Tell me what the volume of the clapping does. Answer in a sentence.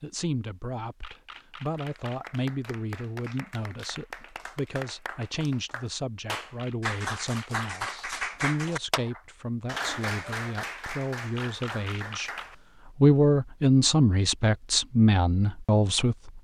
The volume of the clapping goes up, then down.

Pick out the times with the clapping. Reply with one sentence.
You can hear the clapping from 1.6 to 12.9 s.